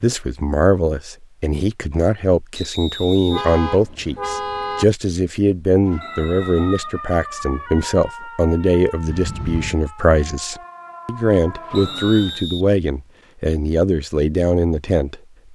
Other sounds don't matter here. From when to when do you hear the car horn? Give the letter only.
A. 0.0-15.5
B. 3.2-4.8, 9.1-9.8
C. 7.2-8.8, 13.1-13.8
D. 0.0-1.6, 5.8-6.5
B.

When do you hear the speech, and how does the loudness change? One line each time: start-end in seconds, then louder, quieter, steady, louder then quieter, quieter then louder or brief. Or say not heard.
0.0-15.5 steady.